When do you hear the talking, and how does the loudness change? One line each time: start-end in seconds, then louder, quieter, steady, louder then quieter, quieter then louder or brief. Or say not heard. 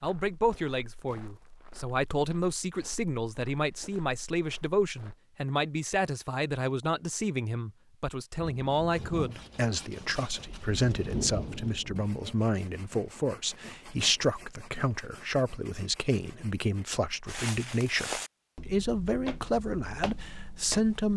0.0-21.1 steady.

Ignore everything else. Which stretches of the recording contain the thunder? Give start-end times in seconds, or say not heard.
8.3-12.1.